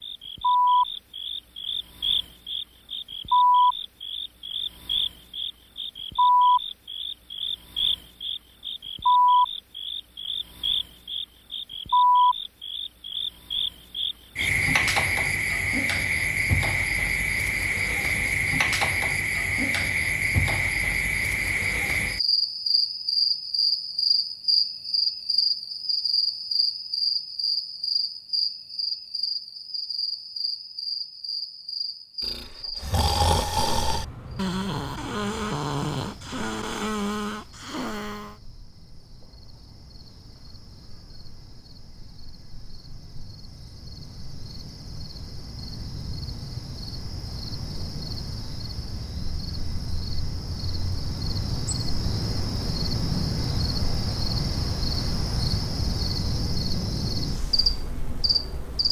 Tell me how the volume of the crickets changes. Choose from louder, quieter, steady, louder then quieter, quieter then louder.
quieter then louder.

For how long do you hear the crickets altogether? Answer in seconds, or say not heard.
59 s.